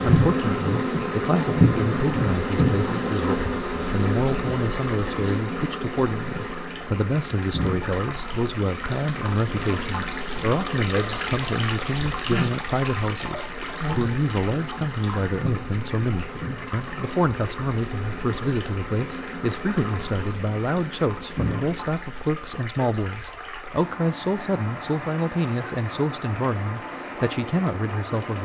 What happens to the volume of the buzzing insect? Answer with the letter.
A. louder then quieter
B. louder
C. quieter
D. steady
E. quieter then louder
C.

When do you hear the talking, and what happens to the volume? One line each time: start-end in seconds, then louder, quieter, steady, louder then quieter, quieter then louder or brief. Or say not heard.
0.0-28.3 steady.